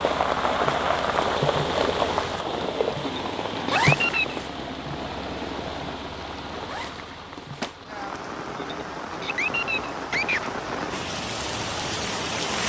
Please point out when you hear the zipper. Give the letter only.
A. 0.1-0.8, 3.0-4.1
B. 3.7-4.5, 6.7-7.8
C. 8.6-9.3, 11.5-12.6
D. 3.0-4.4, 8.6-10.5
B.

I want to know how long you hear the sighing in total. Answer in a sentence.
The sighing can be heard for 3 seconds in total.